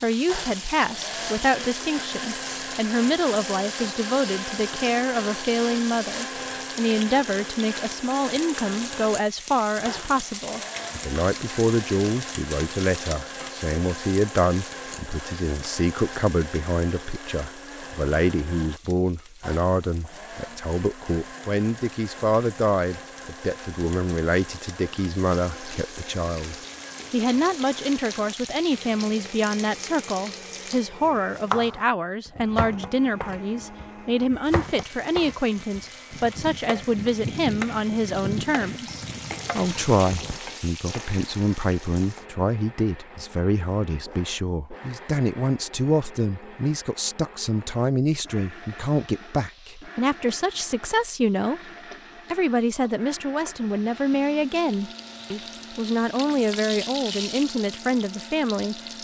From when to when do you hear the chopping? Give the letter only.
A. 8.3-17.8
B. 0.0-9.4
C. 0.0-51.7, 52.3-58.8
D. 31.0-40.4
D.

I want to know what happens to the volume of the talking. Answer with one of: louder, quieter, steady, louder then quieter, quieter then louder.
steady.